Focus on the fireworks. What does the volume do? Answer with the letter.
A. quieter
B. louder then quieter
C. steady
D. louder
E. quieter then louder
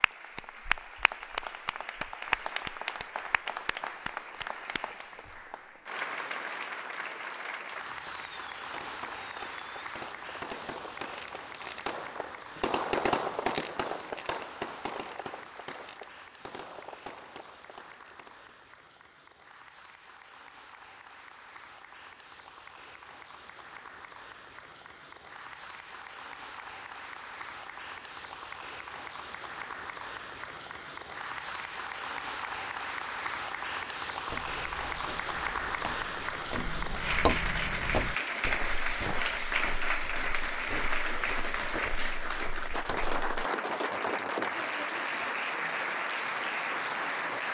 B.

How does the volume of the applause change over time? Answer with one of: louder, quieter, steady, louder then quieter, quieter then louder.
quieter then louder.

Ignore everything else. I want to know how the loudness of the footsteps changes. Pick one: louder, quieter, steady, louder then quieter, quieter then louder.
louder then quieter.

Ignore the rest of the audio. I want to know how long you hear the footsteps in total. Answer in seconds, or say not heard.
9 s.